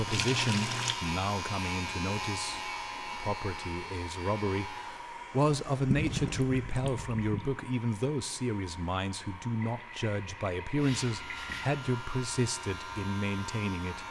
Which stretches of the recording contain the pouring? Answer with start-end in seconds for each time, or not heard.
0.1-0.9, 5.8-7.5, 9.6-11.7.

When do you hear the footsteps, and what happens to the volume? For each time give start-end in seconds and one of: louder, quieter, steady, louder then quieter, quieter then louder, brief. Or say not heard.
not heard.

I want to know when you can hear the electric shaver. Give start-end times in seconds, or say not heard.
0.0-5.0, 10.7-14.0.